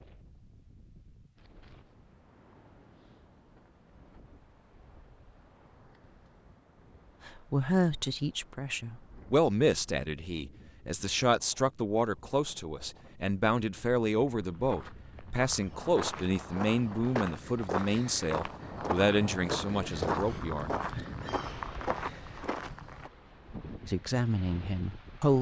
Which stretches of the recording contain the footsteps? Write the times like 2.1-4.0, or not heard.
14.3-23.1.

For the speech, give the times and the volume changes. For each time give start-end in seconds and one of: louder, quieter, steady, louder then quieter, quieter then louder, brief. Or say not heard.
7.2-21.0 steady
23.9-25.3 brief.